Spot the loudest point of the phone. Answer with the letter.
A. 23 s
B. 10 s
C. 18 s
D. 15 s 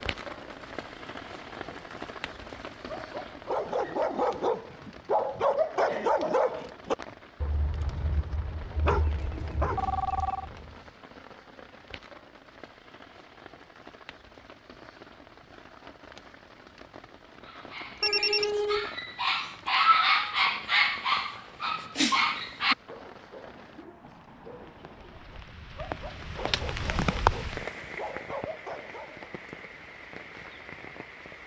C.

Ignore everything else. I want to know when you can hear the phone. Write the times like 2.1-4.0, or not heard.
8.8-10.4, 18.0-18.9.